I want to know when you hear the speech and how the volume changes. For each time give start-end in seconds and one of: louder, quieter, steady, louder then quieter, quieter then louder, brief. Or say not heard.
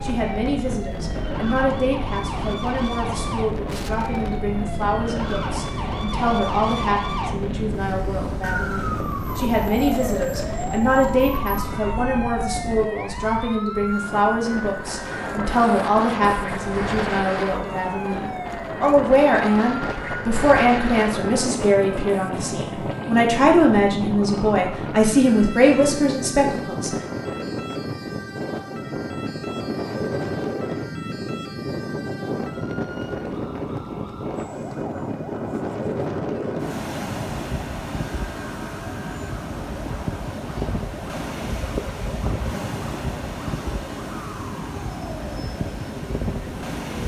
0.0-26.9 louder.